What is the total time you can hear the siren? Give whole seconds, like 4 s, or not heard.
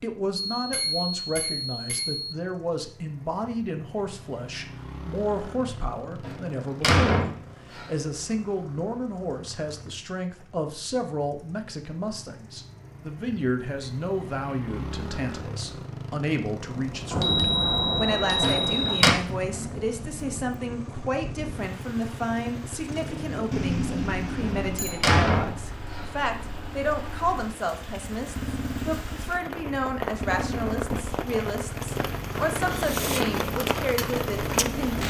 not heard.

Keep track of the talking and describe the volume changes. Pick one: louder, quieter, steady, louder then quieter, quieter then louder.
steady.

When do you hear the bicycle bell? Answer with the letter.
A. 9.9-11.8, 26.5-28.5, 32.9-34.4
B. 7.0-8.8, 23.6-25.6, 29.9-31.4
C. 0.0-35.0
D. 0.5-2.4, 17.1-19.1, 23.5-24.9
D.